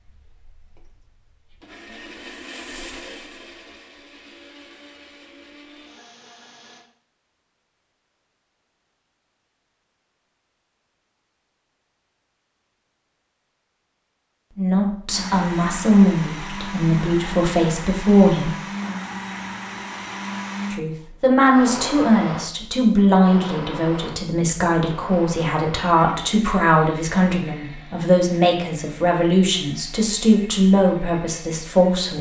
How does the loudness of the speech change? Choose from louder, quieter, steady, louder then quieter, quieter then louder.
steady.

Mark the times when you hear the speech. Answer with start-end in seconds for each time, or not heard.
14.6-18.6, 20.7-32.1.